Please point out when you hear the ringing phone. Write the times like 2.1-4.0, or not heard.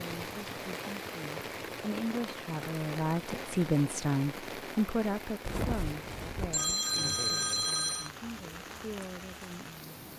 0.2-0.7, 5.5-8.1.